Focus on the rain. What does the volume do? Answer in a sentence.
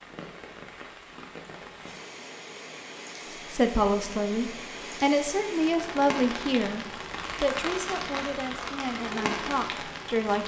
The loudness of the rain goes up.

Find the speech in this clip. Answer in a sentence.
The speech can be heard from 3.5 to 10.4 s.